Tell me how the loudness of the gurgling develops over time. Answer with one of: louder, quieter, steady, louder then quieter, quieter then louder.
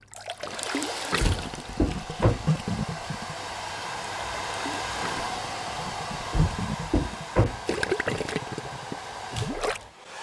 quieter then louder.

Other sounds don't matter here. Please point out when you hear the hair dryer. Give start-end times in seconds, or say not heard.
0.0-10.1.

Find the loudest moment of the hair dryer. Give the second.
5 s.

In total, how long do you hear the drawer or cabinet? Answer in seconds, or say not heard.
3 s.